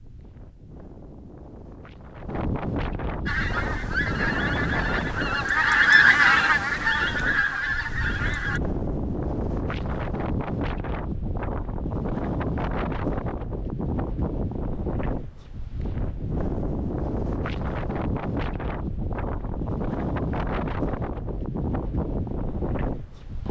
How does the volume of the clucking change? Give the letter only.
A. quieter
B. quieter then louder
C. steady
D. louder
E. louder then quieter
E.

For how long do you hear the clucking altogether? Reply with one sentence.
You can hear the clucking for 5 seconds altogether.